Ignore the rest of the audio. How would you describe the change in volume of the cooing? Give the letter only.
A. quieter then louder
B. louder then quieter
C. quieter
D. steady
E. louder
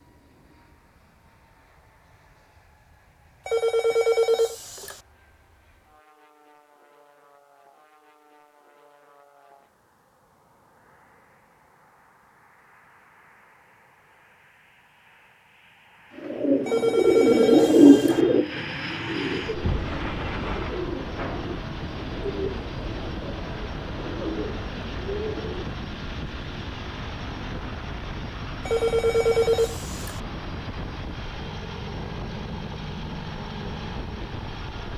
C.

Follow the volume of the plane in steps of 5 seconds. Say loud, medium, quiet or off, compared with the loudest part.
quiet, quiet, quiet, loud, loud, loud, loud.